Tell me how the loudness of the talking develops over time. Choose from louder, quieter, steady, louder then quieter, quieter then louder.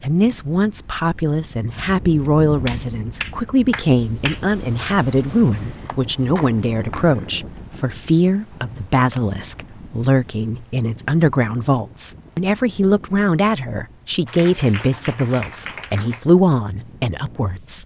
steady.